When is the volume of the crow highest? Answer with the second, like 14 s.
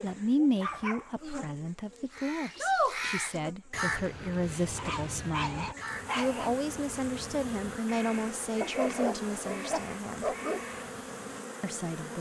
3 s.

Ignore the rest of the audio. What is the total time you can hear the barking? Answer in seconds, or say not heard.
5 s.